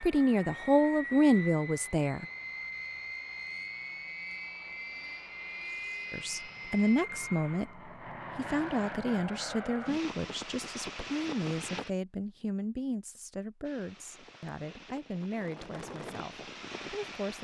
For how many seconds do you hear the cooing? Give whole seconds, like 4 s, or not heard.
not heard.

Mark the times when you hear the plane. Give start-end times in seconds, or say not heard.
0.0-11.9, 13.6-17.3.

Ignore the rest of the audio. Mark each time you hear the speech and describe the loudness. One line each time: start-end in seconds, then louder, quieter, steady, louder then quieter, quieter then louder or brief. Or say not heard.
0.0-2.2 brief
6.1-17.3 quieter.